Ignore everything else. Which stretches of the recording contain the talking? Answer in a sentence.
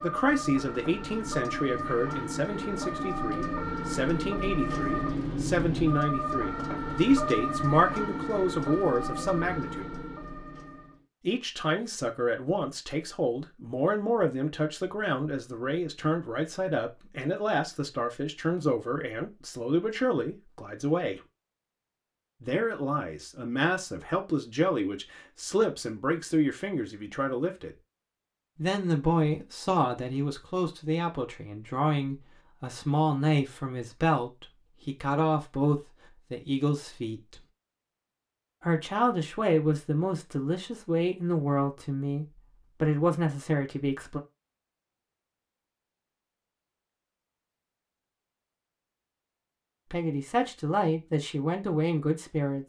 You can hear the talking from 0.0 to 9.9 s, from 11.2 to 21.2 s, from 22.4 to 27.8 s, from 28.6 to 37.4 s, from 38.6 to 44.2 s and from 49.9 to 52.6 s.